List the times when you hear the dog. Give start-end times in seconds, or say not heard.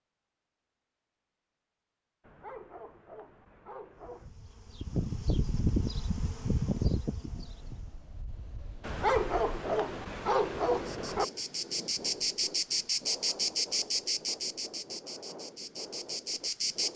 2.2-4.3, 8.8-11.2.